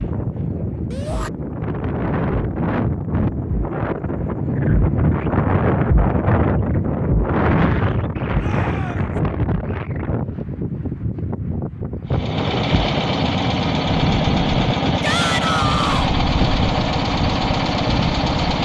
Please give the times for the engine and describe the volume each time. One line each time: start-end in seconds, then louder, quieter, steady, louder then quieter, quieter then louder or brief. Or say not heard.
12.1-18.6 steady.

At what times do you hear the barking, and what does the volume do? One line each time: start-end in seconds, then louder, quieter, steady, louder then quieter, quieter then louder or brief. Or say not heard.
not heard.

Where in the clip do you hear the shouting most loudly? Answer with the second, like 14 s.
15 s.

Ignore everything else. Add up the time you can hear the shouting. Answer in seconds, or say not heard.
2 s.